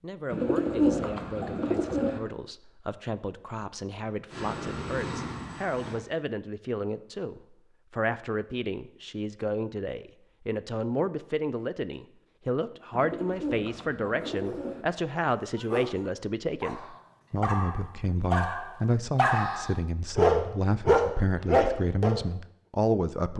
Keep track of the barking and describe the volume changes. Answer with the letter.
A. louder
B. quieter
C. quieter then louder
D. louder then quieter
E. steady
A.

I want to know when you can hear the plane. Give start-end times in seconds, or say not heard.
4.3-6.0.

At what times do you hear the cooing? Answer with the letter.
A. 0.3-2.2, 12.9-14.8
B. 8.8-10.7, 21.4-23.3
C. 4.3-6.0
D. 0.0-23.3
A.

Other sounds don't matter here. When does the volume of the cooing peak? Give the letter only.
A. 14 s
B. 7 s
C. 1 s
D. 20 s
C.